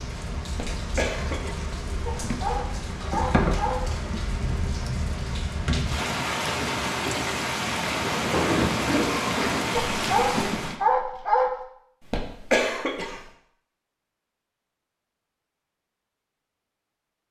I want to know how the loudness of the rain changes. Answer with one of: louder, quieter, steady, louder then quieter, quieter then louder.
louder.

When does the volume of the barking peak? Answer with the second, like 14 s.
11 s.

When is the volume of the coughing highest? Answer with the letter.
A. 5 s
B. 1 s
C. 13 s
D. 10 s
C.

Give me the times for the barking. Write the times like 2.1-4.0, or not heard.
2.0-4.0, 9.8-11.5.